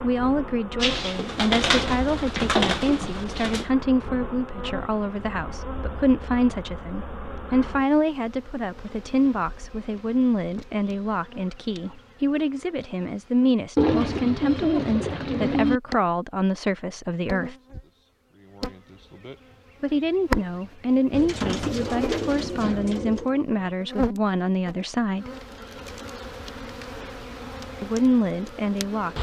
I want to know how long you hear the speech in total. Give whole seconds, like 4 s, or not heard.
24 s.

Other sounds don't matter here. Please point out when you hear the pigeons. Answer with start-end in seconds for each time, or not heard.
0.8-3.6, 13.8-15.8, 21.1-23.3.